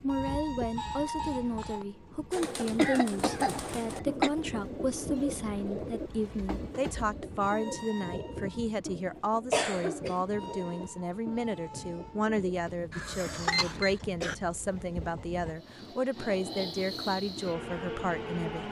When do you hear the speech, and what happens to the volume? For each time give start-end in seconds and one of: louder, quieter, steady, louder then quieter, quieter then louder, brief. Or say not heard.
0.0-18.6 steady.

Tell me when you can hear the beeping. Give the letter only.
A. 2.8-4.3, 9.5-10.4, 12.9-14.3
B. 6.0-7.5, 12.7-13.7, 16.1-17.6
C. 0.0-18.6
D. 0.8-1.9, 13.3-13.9
D.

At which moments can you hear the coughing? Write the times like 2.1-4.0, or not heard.
2.8-4.3, 9.5-10.4, 12.9-14.3.